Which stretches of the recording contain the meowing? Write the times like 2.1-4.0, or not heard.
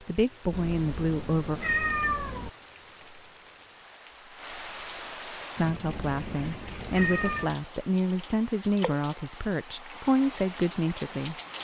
0.5-2.5, 5.8-7.5.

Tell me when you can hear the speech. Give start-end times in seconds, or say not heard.
0.1-1.6, 5.5-11.3.